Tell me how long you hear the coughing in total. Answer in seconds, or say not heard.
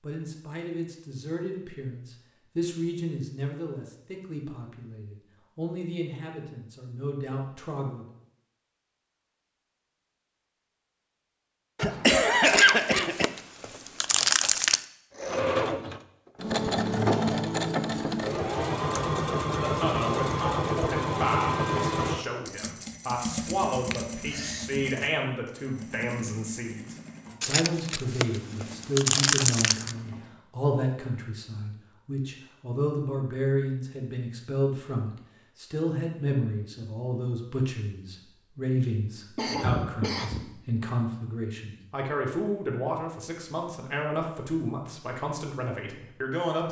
3 s.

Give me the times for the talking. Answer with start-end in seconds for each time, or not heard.
0.0-8.1, 19.4-46.6.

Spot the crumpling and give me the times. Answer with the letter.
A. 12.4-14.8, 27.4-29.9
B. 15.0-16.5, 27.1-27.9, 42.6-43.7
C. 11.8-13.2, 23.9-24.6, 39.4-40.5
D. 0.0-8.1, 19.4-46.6
A.